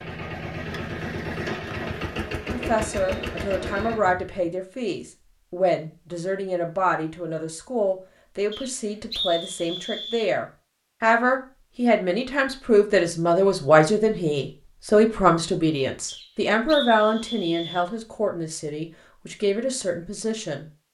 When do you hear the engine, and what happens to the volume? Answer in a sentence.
The engine can be heard from 0.0 to 4.5 s, at a steady volume.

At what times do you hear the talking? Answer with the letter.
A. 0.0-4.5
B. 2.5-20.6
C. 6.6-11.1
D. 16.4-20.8
B.